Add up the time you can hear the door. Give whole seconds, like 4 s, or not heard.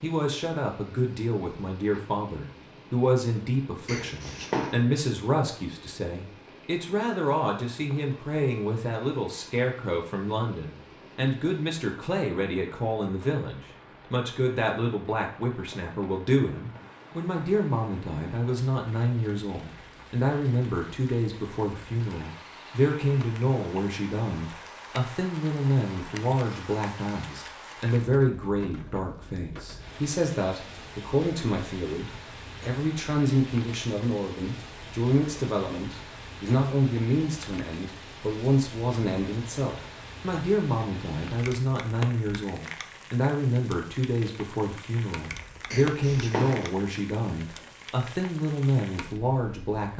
2 s.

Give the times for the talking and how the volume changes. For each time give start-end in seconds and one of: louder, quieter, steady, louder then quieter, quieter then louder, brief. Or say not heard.
0.0-49.9 steady.